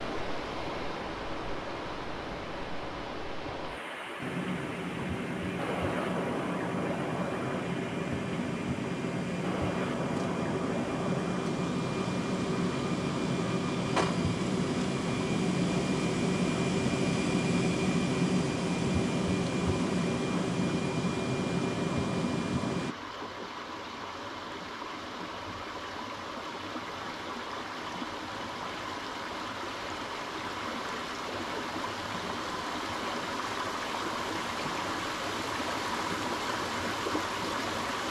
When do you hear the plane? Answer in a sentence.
You can hear the plane from 4.2 to 22.9 s.